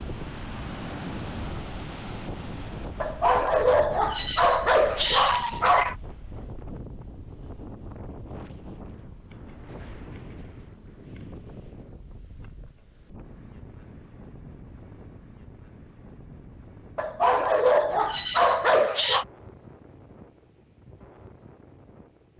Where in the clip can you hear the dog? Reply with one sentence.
You can hear the dog from 3.0 to 6.0 s and from 16.9 to 19.2 s.